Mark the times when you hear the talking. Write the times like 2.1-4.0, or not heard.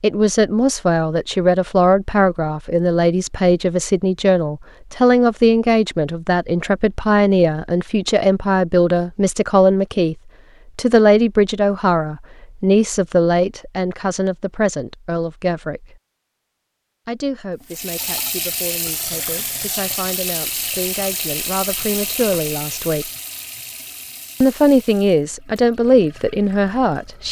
0.0-10.2, 10.8-16.0, 17.1-23.1, 24.4-27.2.